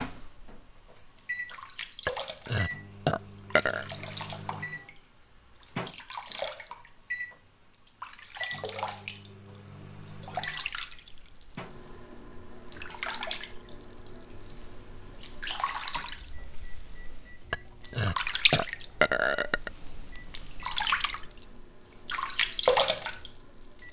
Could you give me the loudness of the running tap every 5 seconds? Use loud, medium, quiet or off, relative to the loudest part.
quiet, medium, medium, medium, loud.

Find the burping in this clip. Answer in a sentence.
You can hear the burping from 2.0 to 3.9 s and from 17.5 to 19.7 s.